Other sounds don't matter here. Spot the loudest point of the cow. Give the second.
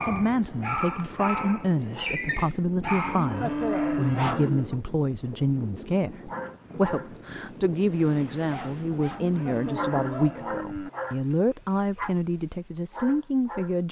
4 s.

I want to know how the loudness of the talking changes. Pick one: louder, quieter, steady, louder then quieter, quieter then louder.
steady.